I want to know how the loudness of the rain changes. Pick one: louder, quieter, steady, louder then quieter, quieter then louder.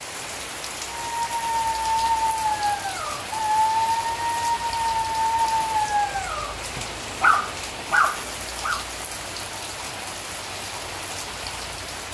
steady.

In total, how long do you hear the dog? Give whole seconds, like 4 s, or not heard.
8 s.